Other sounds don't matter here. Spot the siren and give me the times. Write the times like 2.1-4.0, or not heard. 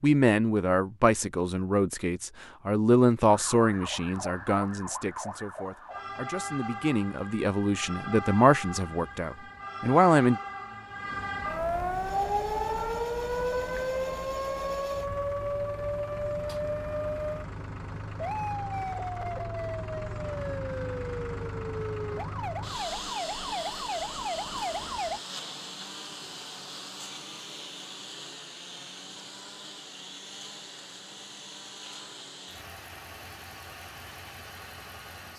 3.2-25.2.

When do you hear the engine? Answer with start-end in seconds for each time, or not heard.
11.9-35.3.